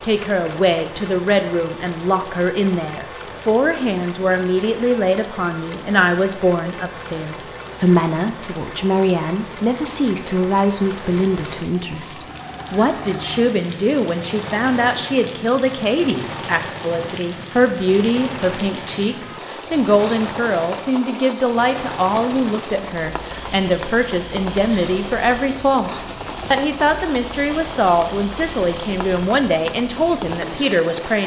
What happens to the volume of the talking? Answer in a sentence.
The loudness of the talking stays about the same.